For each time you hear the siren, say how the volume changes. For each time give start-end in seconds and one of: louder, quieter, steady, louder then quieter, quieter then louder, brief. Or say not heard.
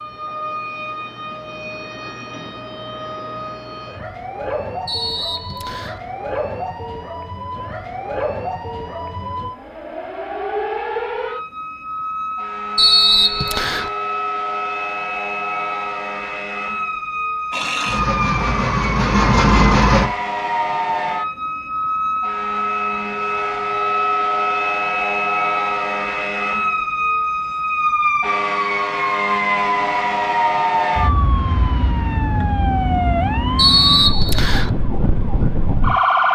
0.0-36.3 louder.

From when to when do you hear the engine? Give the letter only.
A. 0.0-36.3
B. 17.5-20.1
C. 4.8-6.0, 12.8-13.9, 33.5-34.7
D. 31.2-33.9
B.